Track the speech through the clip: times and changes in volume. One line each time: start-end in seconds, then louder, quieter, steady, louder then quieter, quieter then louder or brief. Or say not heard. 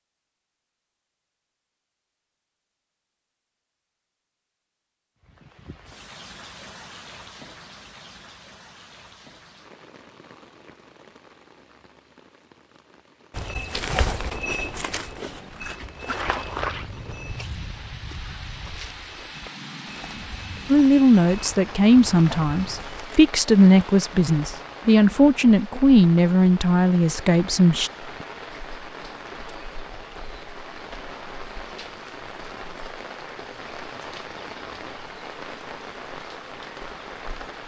20.7-27.9 steady.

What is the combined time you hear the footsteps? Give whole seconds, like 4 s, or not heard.
10 s.